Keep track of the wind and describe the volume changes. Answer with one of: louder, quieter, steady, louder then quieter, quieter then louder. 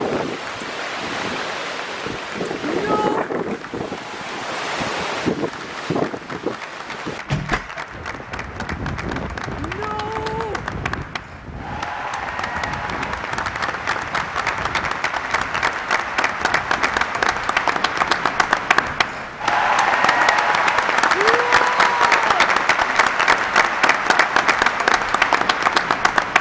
quieter.